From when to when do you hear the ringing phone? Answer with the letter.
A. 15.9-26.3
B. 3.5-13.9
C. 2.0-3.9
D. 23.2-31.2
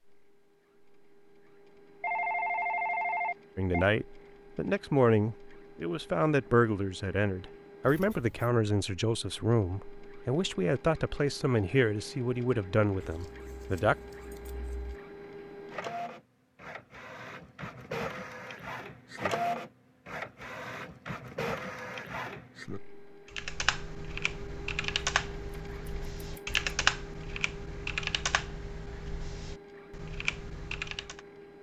C.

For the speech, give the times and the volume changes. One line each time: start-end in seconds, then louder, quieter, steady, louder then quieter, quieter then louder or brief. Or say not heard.
3.5-13.9 steady.